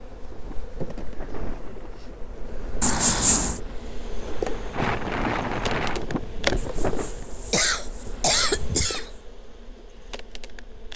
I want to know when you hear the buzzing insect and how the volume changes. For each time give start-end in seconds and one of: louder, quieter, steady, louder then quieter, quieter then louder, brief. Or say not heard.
0.0-10.9 louder then quieter.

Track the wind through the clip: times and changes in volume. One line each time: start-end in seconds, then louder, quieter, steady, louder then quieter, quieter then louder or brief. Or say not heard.
0.1-7.1 quieter then louder.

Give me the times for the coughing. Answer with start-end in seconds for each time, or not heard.
2.8-3.6, 6.5-9.1.